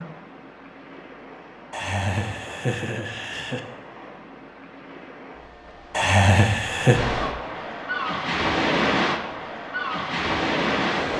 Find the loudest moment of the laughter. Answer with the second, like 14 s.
6 s.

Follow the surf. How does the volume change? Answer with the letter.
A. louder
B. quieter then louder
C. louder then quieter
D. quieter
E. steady
A.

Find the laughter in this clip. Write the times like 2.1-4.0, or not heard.
1.7-3.6, 5.9-7.0.